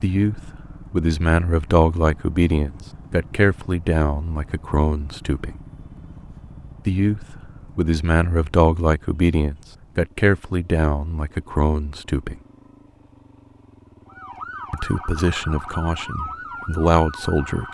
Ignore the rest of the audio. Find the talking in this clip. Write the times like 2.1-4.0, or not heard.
0.0-5.5, 6.8-12.3, 14.7-17.6.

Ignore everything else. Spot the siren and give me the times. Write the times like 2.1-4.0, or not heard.
14.1-17.6.